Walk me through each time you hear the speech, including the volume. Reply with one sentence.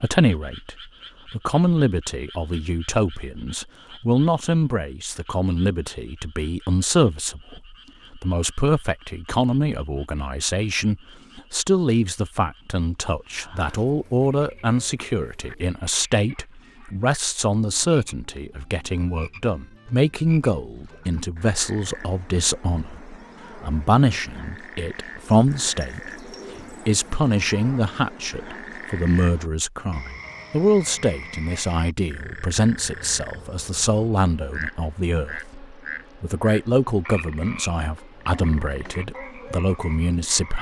You can hear the speech from 0.0 to 40.5 s, at a steady volume.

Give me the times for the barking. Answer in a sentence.
You can't hear the barking here.